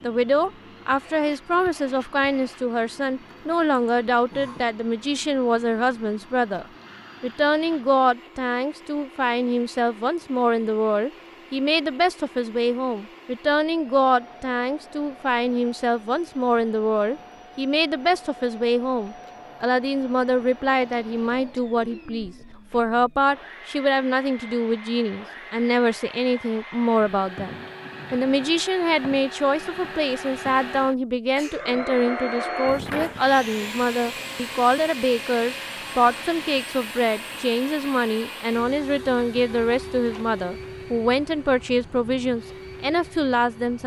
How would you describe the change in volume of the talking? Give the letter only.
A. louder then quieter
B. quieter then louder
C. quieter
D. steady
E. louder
D.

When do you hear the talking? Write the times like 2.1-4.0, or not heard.
0.0-43.8.